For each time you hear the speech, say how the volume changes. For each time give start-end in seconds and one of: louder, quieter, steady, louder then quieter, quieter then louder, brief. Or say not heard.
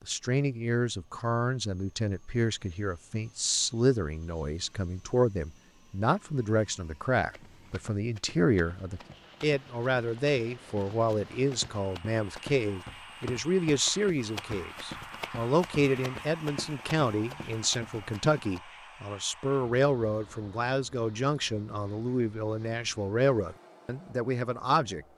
0.0-25.1 steady.